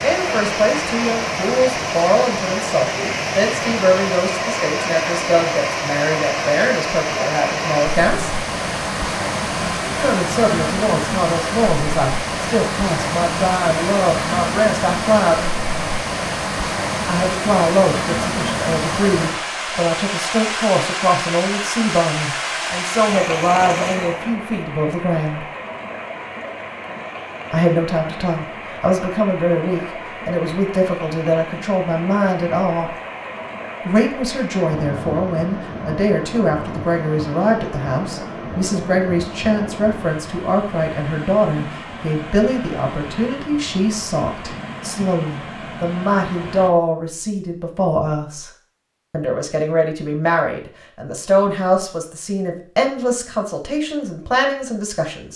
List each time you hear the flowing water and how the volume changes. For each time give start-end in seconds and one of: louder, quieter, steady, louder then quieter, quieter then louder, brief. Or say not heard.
0.0-46.7 quieter.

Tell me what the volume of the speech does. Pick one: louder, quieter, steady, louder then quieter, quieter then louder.
steady.